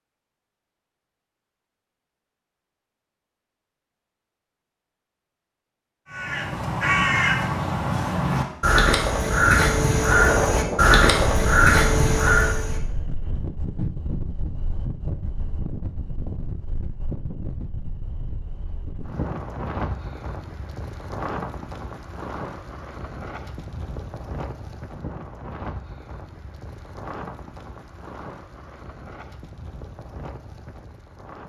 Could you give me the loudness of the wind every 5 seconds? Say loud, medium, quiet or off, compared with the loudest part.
off, off, loud, medium, medium, medium, quiet.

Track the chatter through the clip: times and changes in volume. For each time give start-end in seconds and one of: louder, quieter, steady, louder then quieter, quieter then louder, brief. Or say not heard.
not heard.